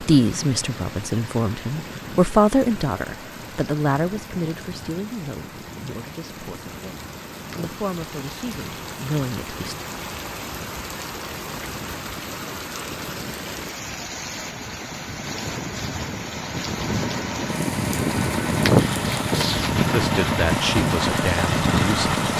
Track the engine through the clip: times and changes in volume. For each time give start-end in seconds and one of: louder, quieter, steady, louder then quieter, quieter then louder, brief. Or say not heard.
0.0-22.3 louder.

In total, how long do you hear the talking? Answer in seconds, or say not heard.
12 s.